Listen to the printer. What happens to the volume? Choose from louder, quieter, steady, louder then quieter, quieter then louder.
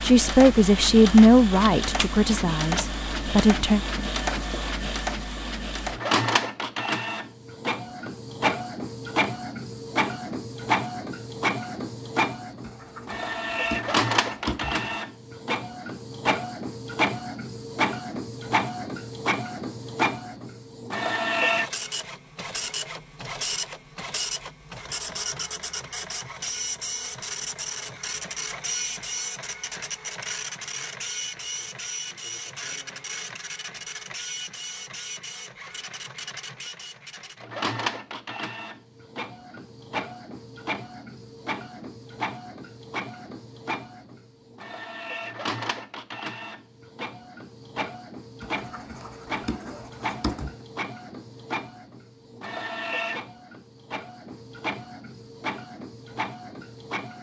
quieter.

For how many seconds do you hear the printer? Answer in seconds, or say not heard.
57 s.